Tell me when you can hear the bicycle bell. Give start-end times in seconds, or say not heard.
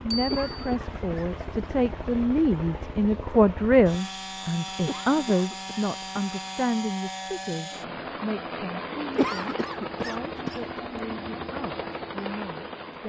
0.1-0.8.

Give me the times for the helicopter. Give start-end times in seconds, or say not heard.
0.0-13.0.